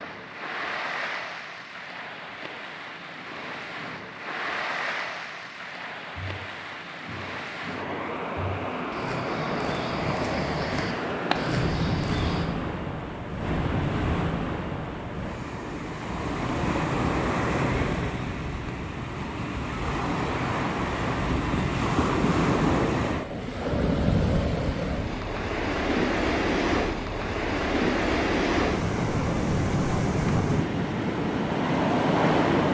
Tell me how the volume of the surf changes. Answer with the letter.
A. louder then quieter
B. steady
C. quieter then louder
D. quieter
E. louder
E.